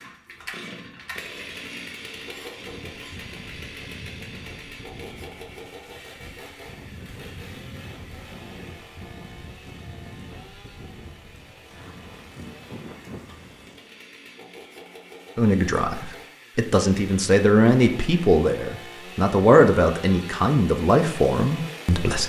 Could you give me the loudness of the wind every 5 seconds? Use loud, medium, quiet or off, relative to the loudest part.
loud, loud, loud, off, off.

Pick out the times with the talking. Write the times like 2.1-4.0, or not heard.
15.3-22.2.